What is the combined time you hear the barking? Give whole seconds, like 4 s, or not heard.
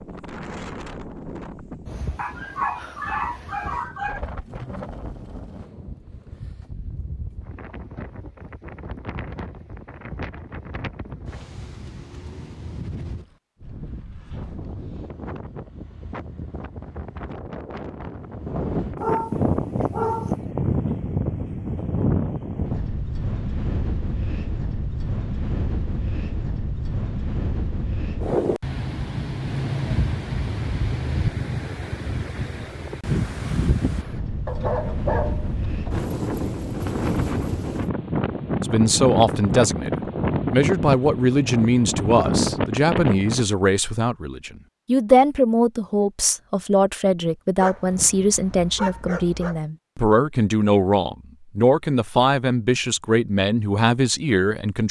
7 s.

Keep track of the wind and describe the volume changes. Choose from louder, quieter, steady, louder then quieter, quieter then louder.
louder.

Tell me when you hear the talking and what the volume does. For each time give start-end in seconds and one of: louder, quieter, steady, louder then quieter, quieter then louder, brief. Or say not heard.
38.6-39.9 brief
40.5-54.8 steady.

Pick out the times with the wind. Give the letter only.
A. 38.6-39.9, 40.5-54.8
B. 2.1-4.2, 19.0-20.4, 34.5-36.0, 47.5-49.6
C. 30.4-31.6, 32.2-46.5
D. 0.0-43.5
D.